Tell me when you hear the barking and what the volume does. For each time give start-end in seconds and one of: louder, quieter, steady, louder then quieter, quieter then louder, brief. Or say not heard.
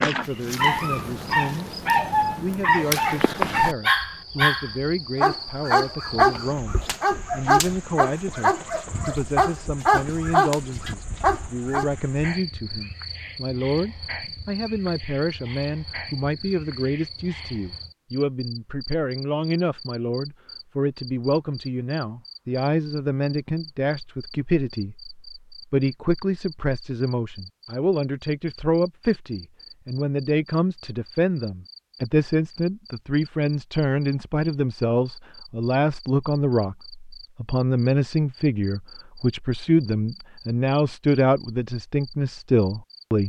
0.2-11.9 steady.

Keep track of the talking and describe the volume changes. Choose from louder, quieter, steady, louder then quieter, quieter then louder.
louder.